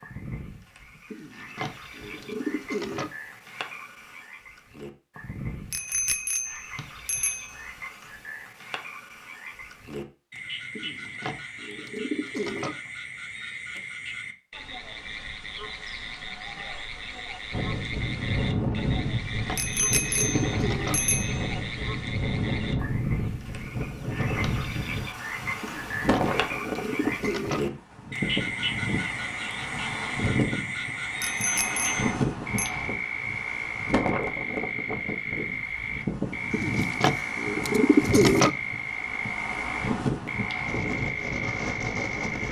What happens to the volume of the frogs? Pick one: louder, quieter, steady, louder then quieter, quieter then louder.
louder.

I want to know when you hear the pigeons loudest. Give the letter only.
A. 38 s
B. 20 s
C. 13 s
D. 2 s
A.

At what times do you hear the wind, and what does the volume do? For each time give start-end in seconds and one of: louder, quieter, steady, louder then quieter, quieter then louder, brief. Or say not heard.
17.5-42.4 steady.